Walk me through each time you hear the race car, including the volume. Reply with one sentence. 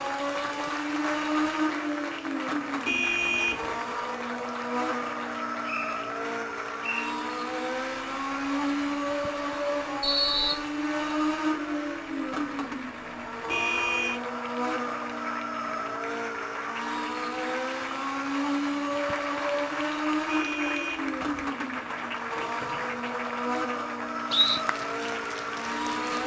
The race car can be heard from 0.0 to 26.2 s, at a steady volume.